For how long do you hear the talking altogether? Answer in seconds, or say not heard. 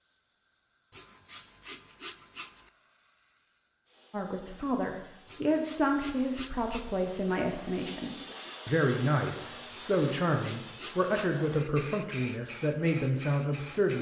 10 s.